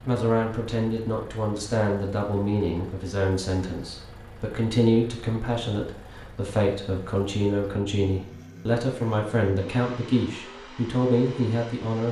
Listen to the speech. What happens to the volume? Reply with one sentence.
The loudness of the speech stays about the same.